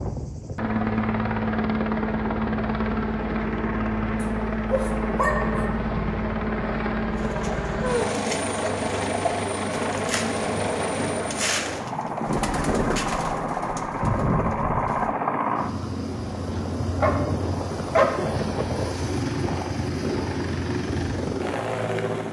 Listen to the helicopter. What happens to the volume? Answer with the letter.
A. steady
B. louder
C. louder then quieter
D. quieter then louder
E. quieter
A.